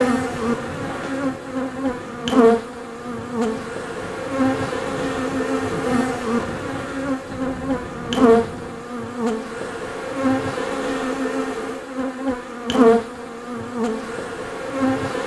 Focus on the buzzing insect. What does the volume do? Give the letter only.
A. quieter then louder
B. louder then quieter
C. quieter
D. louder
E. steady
E.